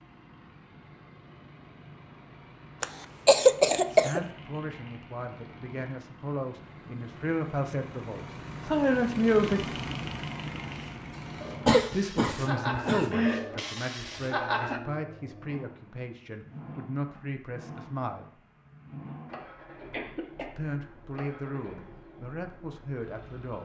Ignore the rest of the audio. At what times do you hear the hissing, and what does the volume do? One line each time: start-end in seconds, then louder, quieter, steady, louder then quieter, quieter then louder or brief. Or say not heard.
10.7-14.8 louder then quieter.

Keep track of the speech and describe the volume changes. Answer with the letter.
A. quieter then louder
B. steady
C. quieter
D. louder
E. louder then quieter
E.